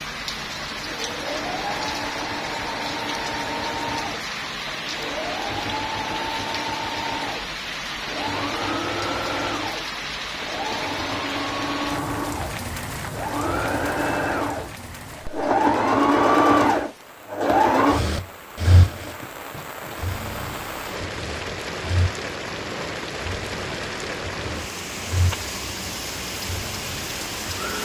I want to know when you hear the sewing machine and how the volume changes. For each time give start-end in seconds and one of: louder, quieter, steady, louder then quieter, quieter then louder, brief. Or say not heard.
0.7-27.8 louder then quieter.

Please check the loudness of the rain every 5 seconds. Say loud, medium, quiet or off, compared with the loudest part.
loud, loud, loud, medium, loud, loud.